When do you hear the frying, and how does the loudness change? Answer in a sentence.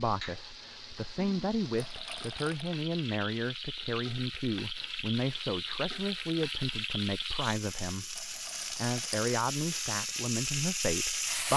You can hear the frying from 0.0 to 11.5 s, getting louder.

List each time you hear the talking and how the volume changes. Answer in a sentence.
The talking can be heard from 0.0 to 11.5 s, at a steady volume.